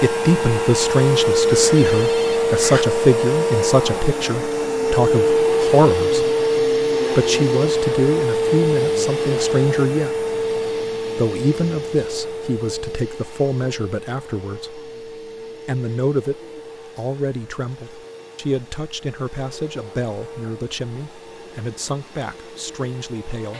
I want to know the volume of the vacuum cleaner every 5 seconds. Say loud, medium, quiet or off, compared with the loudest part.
loud, loud, medium, quiet, quiet.